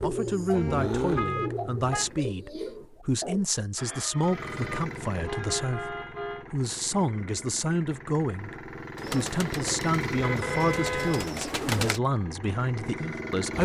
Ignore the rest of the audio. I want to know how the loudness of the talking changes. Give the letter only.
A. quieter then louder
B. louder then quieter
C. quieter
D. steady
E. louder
D.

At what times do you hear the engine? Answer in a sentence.
You can hear the engine from 0.0 to 2.3 s and from 4.1 to 13.6 s.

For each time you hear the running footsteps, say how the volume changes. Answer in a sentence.
The running footsteps can't be heard in this clip.